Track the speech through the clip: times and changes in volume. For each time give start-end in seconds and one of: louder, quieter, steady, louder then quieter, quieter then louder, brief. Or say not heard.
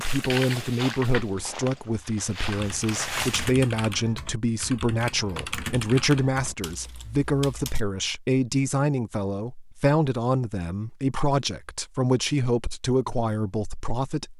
0.0-14.3 steady.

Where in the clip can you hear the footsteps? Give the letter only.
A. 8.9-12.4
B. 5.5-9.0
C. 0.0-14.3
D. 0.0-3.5
D.